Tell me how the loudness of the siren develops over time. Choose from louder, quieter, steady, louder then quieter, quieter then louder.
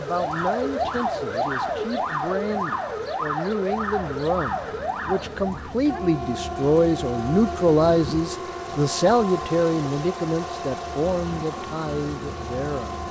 quieter.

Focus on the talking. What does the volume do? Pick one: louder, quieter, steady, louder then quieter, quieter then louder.
louder then quieter.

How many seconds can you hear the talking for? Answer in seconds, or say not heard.
13 s.